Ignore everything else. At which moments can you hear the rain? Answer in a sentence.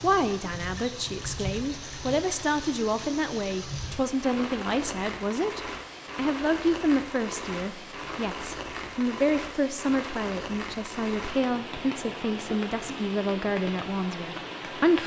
You can hear the rain from 0.0 to 15.0 s.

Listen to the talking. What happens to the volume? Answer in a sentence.
The volume of the talking stays about the same.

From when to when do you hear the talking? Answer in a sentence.
You can hear the talking from 0.0 to 15.0 s.